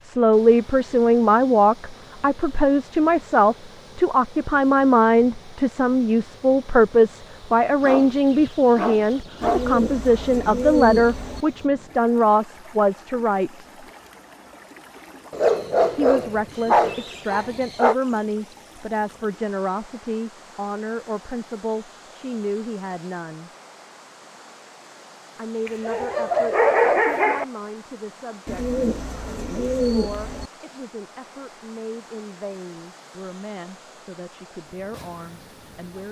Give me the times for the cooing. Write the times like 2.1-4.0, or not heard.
9.4-11.4, 28.4-30.5.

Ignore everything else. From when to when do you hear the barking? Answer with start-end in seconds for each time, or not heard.
7.8-9.7, 15.3-17.9, 25.6-27.4.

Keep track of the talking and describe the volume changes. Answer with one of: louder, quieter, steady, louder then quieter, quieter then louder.
quieter.